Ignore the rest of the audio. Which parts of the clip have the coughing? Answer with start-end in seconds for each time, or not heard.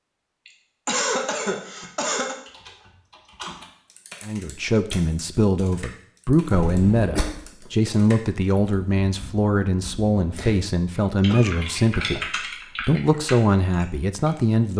0.5-2.4, 6.5-7.2, 11.2-12.3.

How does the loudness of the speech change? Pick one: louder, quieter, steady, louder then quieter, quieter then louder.
steady.